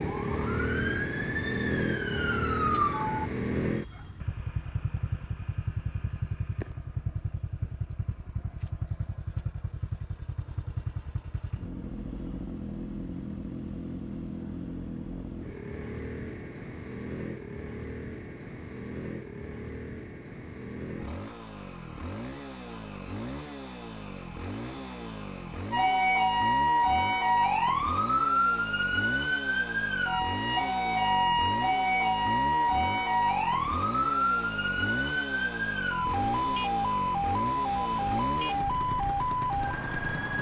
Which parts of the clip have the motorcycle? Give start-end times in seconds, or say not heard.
0.0-40.3.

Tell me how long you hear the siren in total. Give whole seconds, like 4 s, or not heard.
18 s.